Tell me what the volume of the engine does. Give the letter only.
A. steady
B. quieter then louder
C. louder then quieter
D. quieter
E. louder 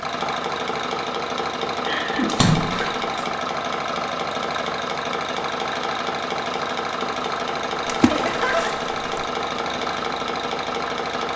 A.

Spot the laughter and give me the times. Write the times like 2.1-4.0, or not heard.
1.9-2.5, 8.0-8.7.